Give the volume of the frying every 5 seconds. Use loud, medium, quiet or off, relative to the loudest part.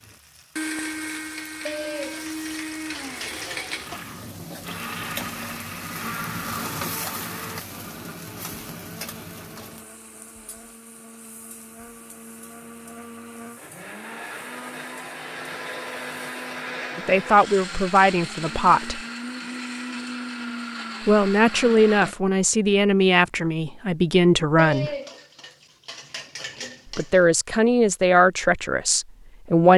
medium, loud, quiet, off, off, off.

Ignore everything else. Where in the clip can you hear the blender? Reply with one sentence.
The blender can be heard from 0.0 to 22.1 s.